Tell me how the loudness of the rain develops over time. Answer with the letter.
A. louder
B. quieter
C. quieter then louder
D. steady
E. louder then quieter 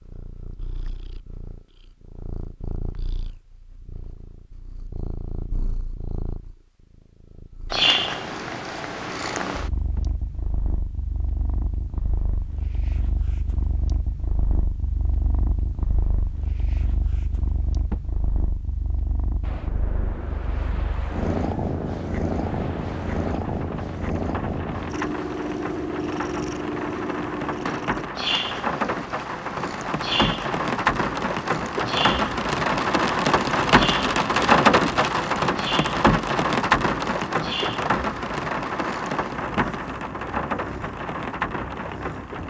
E.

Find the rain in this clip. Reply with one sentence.
You can hear the rain from 19.4 to 42.4 s.